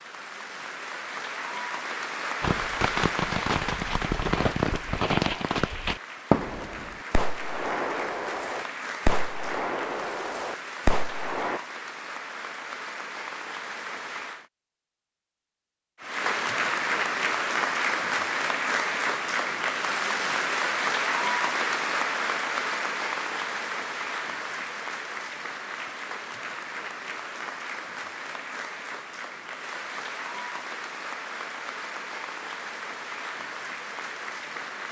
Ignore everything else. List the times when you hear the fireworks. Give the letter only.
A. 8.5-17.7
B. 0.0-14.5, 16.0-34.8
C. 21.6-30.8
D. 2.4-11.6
D.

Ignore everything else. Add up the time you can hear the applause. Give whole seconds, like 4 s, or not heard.
33 s.